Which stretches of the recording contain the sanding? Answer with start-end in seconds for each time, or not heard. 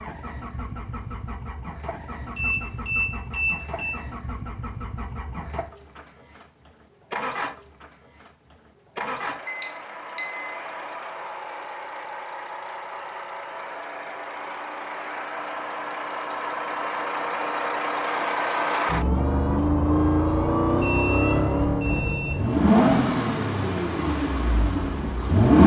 not heard.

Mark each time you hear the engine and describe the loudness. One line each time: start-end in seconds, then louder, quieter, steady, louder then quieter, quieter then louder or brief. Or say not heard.
0.0-25.6 louder.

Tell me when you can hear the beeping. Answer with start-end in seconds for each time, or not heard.
2.4-4.0, 9.4-10.6, 20.8-22.4.